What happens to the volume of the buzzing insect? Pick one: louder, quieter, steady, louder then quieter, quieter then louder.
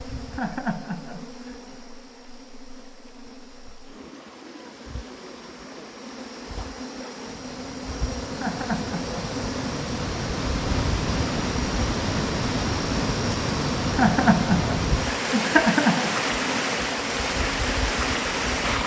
louder.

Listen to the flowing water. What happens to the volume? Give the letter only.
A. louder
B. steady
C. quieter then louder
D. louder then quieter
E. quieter
A.